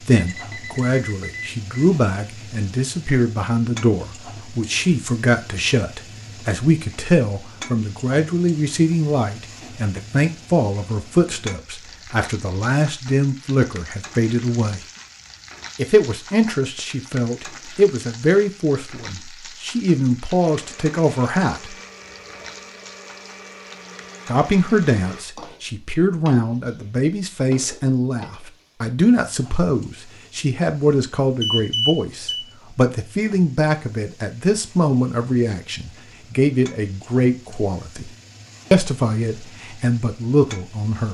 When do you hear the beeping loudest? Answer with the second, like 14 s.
32 s.